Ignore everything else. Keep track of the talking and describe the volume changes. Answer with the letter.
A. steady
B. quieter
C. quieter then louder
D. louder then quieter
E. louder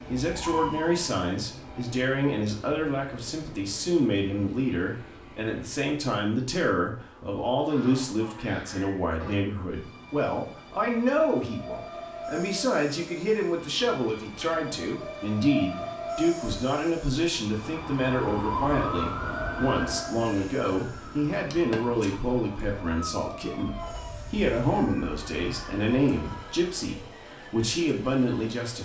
A.